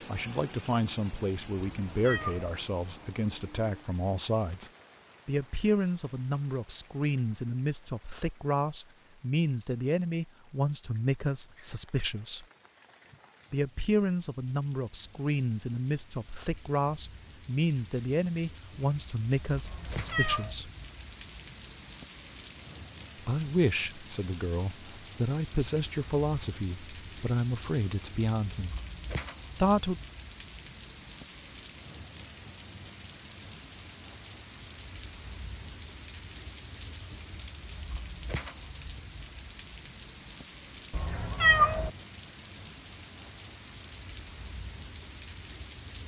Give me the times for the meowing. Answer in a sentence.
The meowing can be heard from 1.6 to 2.5 s, from 19.6 to 20.6 s and from 40.9 to 41.9 s.